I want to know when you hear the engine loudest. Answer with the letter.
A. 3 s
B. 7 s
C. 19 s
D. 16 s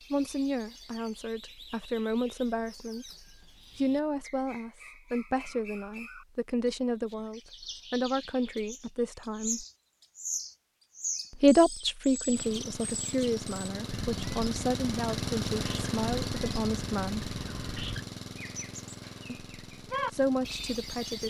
D.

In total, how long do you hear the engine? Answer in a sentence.
You can hear the engine for 9 seconds altogether.